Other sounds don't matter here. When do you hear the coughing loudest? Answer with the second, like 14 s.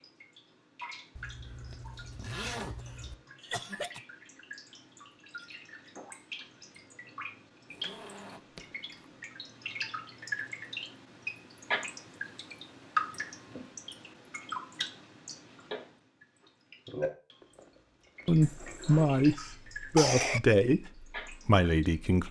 20 s.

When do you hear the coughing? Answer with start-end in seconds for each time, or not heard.
3.5-4.0, 18.4-20.4.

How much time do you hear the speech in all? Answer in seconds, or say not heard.
4 s.